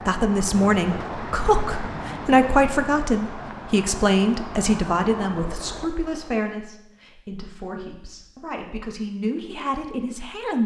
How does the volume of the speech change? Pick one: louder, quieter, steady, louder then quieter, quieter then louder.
quieter.